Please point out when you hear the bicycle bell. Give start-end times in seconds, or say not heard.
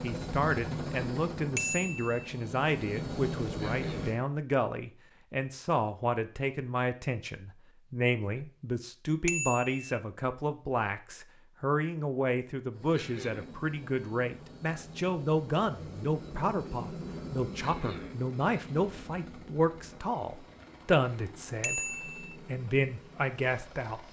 1.6-2.2, 9.2-9.8, 21.6-22.4.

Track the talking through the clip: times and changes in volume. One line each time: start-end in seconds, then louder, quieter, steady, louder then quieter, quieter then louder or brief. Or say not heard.
0.0-24.0 steady.